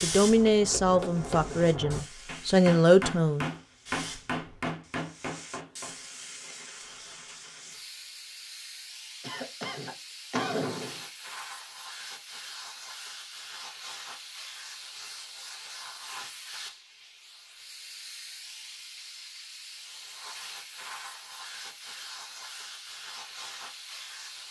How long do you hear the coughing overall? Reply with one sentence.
The coughing can be heard for 2 seconds in total.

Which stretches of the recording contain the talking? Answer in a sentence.
The talking can be heard from 0.0 to 3.5 s.